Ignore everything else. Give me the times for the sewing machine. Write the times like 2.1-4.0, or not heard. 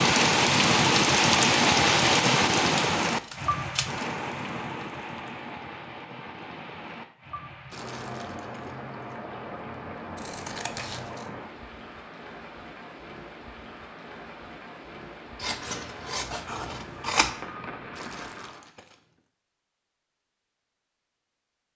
not heard.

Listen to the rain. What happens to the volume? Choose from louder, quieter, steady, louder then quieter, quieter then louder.
quieter.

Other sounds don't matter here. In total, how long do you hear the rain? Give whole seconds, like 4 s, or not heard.
19 s.